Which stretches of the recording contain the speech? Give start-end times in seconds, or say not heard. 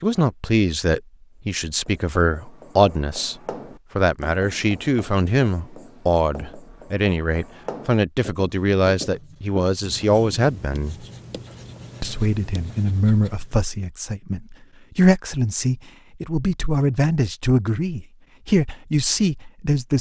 0.0-3.4, 4.0-11.1, 12.0-19.9.